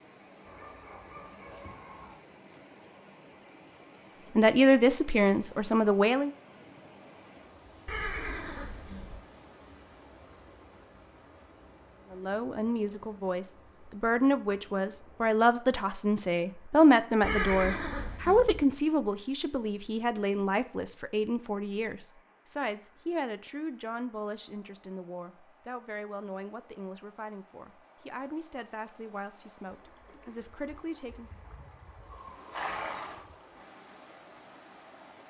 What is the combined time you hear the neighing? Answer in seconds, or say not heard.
4 s.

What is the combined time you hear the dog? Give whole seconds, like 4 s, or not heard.
2 s.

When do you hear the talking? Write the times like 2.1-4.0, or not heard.
4.3-6.3, 12.1-31.3.